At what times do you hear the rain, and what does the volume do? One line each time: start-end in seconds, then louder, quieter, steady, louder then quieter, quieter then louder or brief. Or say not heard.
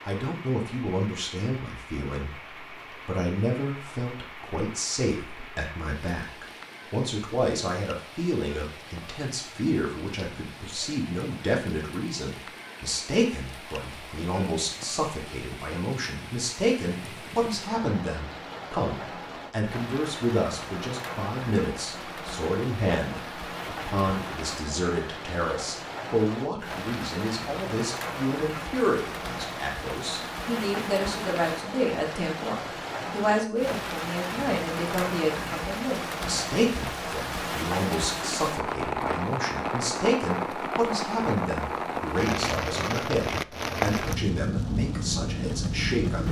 0.0-46.2 louder.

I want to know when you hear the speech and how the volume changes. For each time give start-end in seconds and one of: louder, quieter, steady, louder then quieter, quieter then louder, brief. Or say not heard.
0.0-46.2 steady.